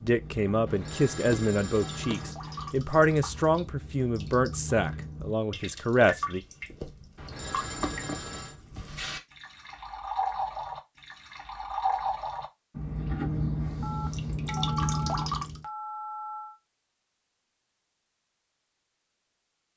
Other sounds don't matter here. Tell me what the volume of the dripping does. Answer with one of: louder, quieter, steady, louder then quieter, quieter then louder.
louder.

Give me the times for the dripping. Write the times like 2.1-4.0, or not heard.
0.0-15.6.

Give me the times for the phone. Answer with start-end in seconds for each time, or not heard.
0.7-2.3, 7.2-8.6, 13.8-16.6.